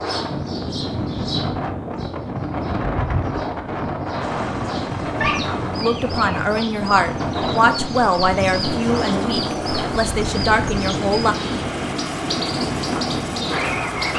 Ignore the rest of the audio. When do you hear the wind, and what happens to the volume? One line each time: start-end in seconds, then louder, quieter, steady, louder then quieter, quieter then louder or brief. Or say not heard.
0.0-14.1 steady.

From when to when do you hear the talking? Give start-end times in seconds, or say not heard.
5.8-11.3.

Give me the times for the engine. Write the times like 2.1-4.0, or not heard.
4.2-14.1.